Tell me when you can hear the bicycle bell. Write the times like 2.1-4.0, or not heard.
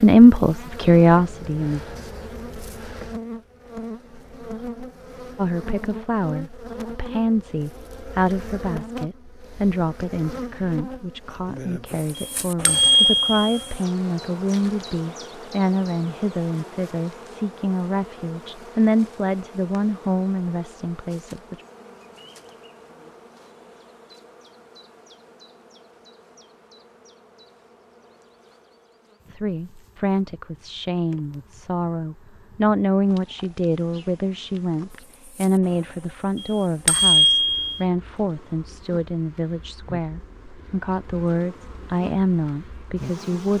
12.2-13.7, 36.4-37.8.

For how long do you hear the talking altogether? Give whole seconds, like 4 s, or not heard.
32 s.